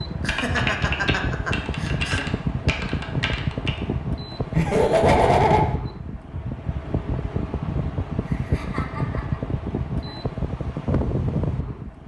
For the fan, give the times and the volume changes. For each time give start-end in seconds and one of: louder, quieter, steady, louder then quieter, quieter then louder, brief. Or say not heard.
0.0-12.0 steady.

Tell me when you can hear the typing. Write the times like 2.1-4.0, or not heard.
0.0-3.8.